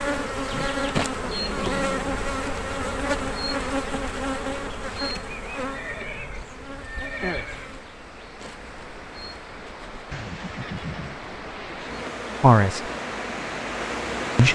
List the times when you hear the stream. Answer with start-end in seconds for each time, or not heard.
6.4-14.5.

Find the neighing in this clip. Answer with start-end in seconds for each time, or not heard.
1.1-2.3, 5.6-7.7, 10.1-11.2.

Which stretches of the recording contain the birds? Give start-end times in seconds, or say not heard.
not heard.